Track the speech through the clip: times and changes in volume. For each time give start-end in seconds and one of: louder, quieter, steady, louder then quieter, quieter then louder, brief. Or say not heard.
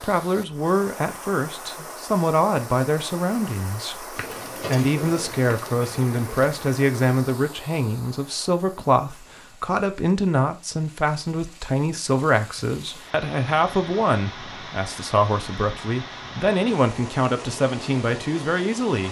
0.0-19.0 steady.